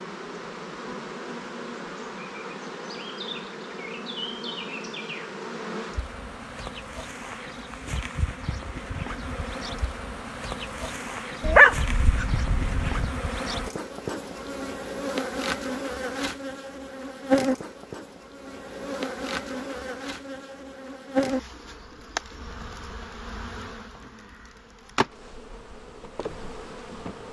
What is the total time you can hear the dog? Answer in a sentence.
You can hear the dog for 2 seconds altogether.